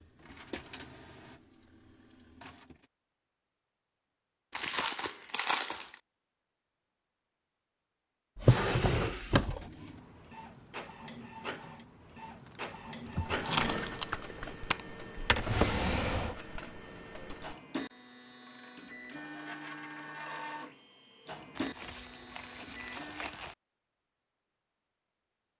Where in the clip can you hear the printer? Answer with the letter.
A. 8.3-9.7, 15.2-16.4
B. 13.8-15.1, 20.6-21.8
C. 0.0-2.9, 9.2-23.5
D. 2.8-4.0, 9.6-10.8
C.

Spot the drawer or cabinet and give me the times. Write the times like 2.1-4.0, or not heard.
8.3-9.7, 15.2-16.4.